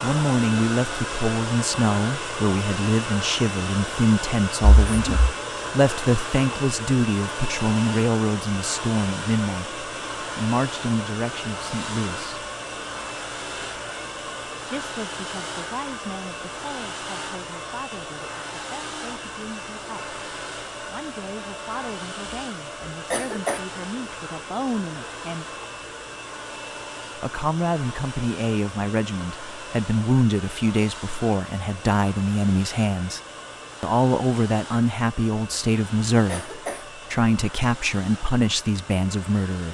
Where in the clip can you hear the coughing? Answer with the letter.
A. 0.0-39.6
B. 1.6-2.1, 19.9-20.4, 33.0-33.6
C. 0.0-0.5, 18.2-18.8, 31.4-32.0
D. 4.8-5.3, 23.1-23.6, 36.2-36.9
D.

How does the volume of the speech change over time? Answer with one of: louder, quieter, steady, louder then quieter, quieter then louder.
quieter then louder.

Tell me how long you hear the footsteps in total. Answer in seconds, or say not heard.
not heard.